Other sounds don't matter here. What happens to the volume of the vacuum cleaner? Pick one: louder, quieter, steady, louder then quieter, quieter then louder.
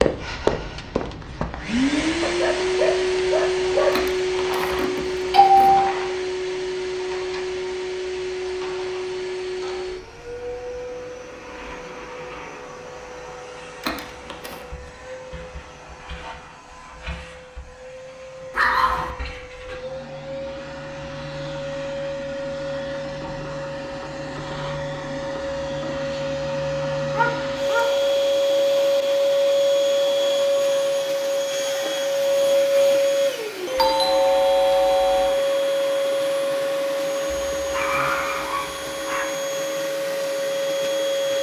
quieter then louder.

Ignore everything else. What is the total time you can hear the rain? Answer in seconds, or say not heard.
not heard.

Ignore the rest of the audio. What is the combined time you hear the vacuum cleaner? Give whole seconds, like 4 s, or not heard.
41 s.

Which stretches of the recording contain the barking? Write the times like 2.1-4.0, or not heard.
2.2-4.0, 18.5-19.1, 27.1-27.9, 37.5-39.2.